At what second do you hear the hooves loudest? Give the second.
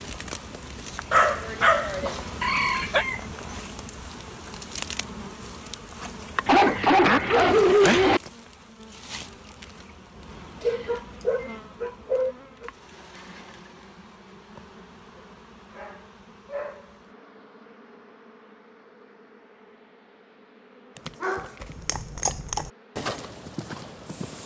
22 s.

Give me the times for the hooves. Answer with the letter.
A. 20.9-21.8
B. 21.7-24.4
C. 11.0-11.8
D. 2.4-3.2
B.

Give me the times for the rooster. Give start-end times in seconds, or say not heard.
2.4-3.2.